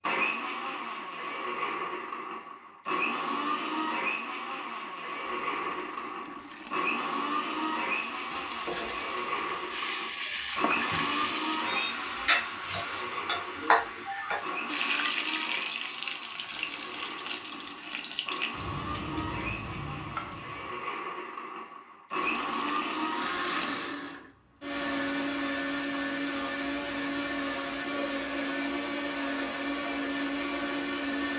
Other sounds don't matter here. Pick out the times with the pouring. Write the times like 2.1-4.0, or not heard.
5.2-7.1, 16.5-18.4, 22.2-23.9.